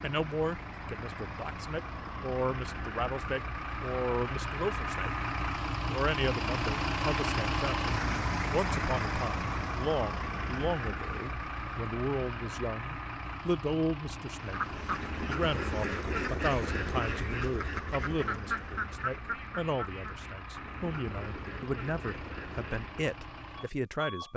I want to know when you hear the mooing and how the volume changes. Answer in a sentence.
You can't hear the mooing here.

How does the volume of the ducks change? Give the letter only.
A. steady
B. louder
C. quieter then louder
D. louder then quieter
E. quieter
E.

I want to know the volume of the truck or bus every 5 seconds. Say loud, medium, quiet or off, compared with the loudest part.
medium, loud, medium, quiet, quiet.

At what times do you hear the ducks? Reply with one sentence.
The ducks can be heard from 14.3 to 23.1 s.